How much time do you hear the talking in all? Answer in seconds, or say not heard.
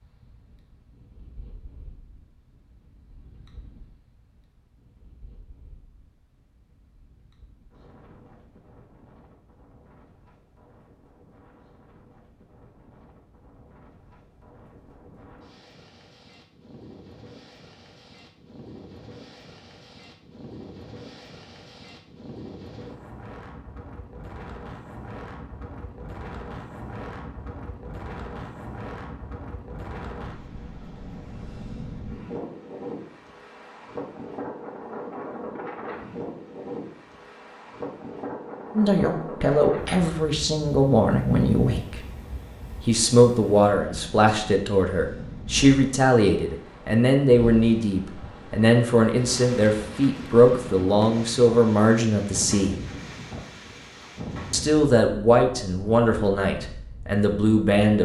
17 s.